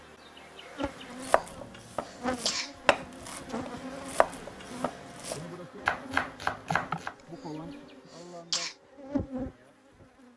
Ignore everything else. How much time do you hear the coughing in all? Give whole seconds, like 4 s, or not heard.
3 s.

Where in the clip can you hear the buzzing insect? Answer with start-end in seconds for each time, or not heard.
0.0-10.3.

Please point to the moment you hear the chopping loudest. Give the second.
6 s.